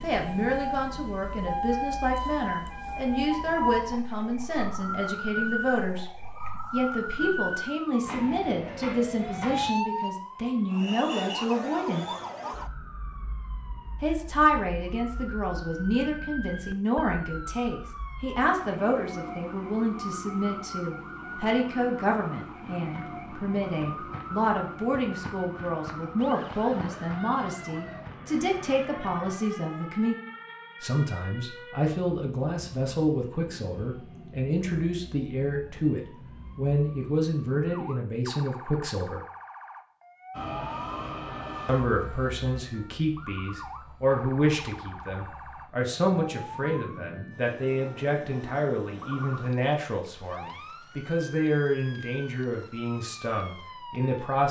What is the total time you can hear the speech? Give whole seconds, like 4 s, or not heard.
49 s.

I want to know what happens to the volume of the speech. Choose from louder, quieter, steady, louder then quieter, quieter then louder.
steady.